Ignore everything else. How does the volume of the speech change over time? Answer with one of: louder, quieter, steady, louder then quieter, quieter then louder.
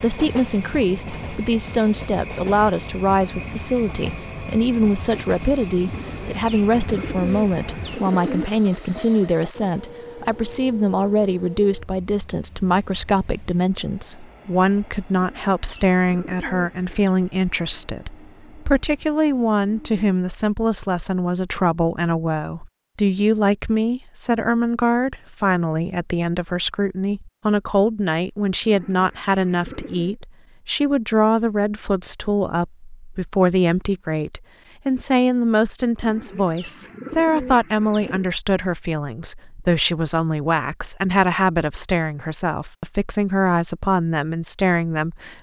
steady.